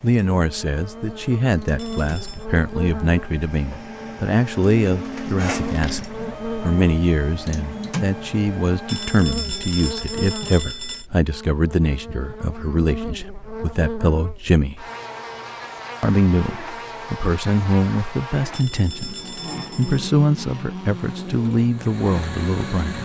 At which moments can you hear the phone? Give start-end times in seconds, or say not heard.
1.8-2.5, 8.8-11.1, 18.5-20.1.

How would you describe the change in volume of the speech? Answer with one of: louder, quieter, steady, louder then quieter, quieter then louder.
steady.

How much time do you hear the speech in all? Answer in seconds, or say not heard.
22 s.